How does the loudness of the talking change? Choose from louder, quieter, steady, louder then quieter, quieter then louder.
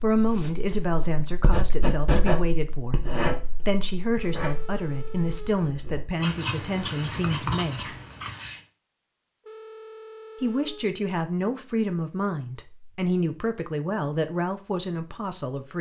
steady.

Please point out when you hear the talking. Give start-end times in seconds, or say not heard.
0.0-3.0, 3.6-7.8, 10.4-15.7.